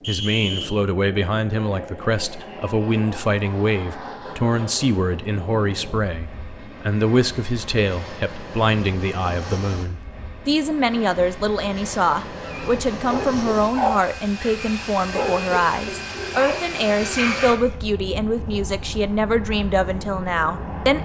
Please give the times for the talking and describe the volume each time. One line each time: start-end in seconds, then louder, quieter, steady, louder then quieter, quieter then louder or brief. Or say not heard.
0.1-21.0 steady.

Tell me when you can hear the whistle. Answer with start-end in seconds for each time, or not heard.
0.0-0.7.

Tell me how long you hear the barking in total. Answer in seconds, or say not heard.
5 s.